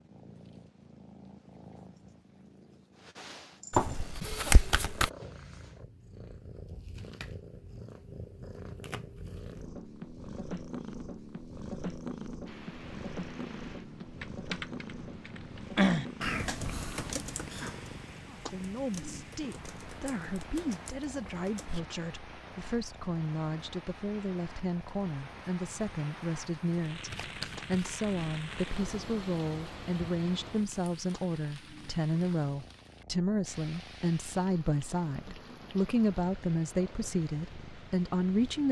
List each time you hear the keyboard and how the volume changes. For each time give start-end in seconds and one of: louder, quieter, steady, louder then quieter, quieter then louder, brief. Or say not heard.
14.2-21.9 quieter.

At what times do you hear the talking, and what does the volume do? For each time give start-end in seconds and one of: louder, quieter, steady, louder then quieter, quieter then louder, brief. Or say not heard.
18.2-38.6 louder.